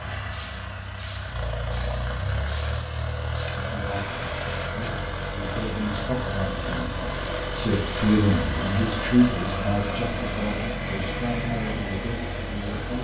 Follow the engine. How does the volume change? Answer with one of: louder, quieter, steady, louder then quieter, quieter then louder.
steady.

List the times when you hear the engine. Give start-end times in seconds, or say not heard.
0.0-12.9.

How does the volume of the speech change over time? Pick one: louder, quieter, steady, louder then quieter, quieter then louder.
louder then quieter.